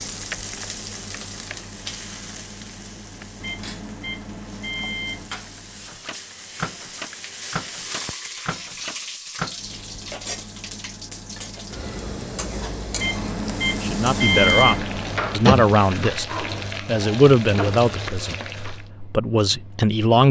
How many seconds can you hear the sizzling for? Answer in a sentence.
The sizzling can be heard for 19 seconds in total.